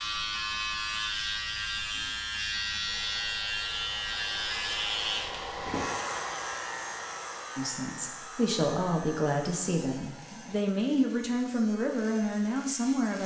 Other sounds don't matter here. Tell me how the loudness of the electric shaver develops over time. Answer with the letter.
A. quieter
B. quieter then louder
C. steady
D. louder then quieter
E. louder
A.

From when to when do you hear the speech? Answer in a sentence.
The speech can be heard from 7.5 to 13.2 s.